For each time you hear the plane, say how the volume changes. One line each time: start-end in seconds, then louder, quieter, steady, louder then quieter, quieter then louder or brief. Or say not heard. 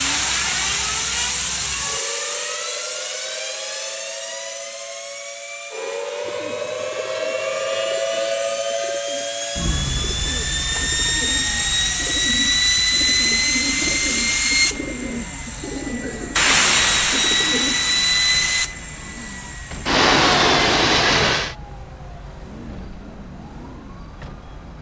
0.0-21.6 quieter then louder.